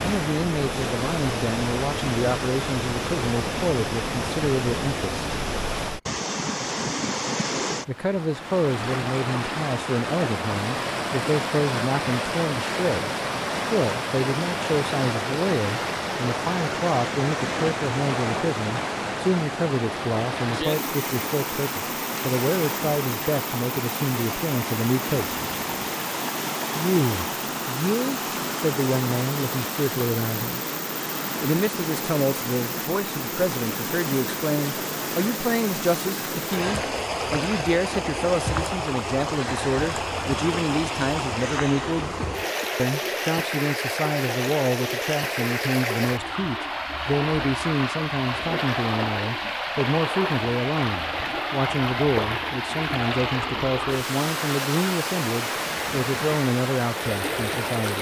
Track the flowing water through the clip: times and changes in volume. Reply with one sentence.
You can hear the flowing water from 0.0 to 57.9 s, at a steady volume.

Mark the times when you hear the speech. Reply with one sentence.
The speech can be heard from 0.0 to 5.2 s, from 7.8 to 25.4 s, from 26.8 to 30.6 s, from 31.4 to 42.1 s and from 42.8 to 57.9 s.